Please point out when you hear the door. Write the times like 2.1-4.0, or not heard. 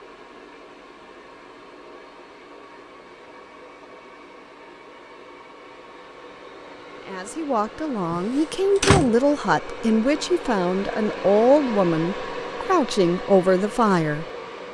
8.1-9.1.